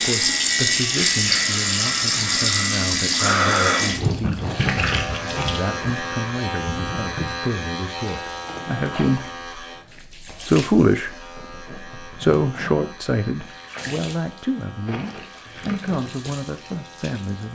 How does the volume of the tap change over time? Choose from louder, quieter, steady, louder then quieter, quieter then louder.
quieter.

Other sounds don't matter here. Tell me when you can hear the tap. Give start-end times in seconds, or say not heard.
0.0-17.5.